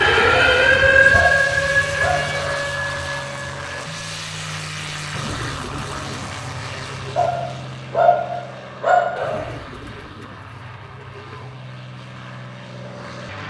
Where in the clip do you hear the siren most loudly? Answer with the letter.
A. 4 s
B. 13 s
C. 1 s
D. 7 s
C.